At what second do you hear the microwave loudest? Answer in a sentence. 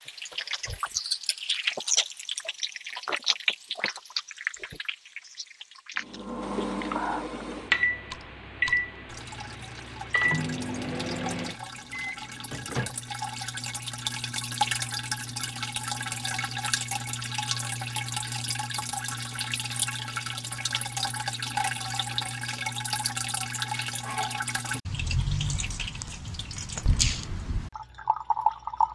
The loudest moment of the microwave is at 8 seconds.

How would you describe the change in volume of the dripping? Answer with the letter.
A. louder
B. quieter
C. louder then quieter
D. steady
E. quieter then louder
E.